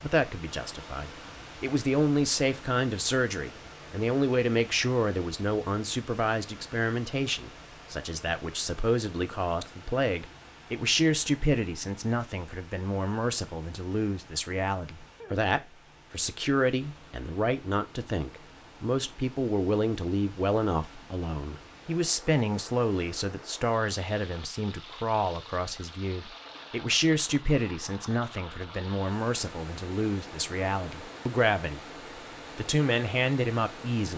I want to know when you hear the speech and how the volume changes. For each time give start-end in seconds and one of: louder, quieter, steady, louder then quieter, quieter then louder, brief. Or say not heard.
0.0-31.8 steady
32.5-34.1 brief.